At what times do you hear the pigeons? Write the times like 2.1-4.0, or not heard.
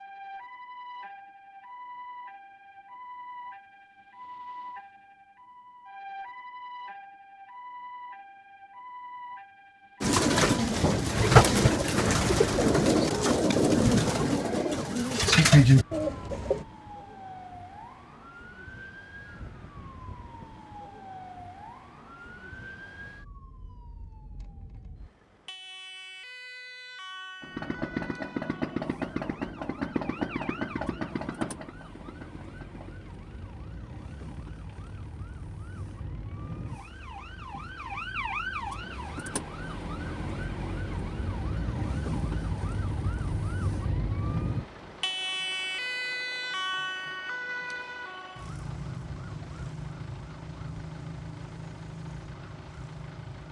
10.0-16.6.